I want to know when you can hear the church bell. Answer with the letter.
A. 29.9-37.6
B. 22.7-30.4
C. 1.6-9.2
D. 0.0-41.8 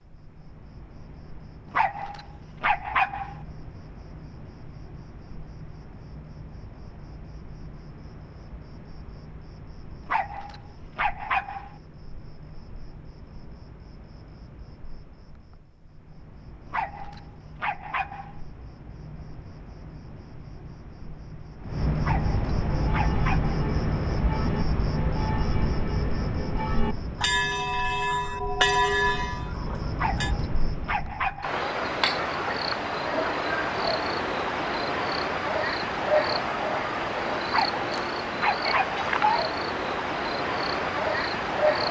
B.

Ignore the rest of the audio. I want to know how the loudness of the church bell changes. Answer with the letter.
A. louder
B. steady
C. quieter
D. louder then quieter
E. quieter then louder
A.